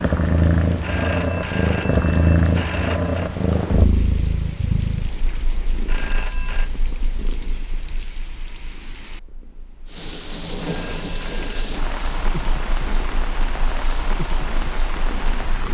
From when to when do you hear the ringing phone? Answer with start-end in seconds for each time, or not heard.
0.8-3.3, 5.8-6.7, 10.6-11.8.